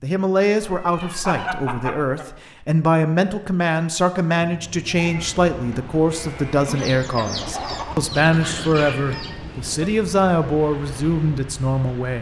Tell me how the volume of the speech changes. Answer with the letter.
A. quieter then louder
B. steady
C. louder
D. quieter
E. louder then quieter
B.